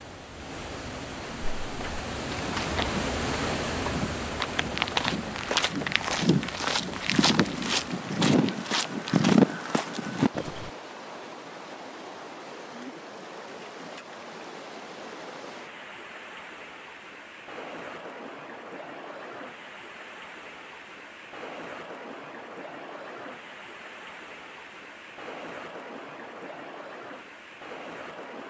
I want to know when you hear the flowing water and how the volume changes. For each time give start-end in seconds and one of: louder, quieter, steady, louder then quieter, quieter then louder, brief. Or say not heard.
0.0-28.4 quieter.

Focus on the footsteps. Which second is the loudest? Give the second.
9 s.